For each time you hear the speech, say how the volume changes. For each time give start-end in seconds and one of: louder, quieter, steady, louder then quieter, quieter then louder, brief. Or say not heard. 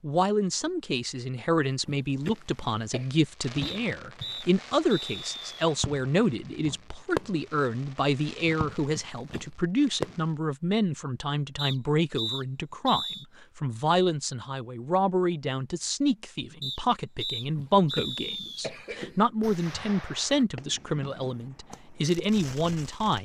0.0-23.2 steady.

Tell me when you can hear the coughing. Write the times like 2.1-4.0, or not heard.
1.9-3.1, 8.9-9.4, 17.4-19.2.